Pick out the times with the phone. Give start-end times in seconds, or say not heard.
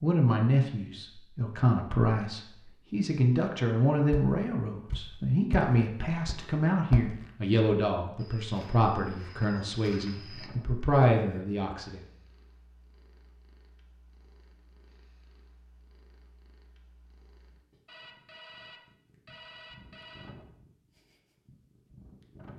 17.9-20.4.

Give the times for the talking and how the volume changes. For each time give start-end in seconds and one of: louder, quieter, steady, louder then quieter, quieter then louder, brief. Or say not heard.
0.0-12.0 steady.